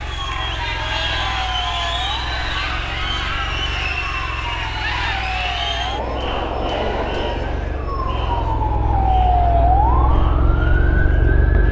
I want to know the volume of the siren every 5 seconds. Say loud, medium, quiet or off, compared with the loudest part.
medium, loud, loud.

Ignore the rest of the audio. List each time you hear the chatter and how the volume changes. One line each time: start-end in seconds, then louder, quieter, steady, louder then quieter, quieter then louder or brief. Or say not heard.
0.0-11.6 quieter.